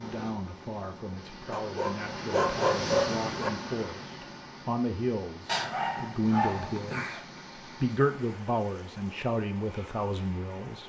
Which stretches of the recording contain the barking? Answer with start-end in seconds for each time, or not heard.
1.5-3.5, 5.5-7.2.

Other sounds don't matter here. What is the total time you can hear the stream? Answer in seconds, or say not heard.
11 s.